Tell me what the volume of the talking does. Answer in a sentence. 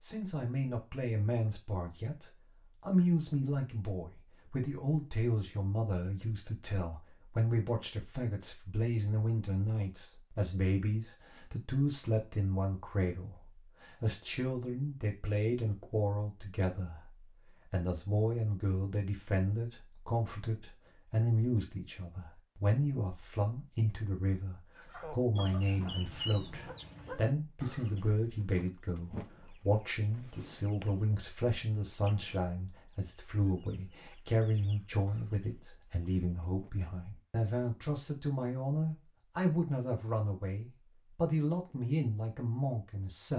The loudness of the talking stays about the same.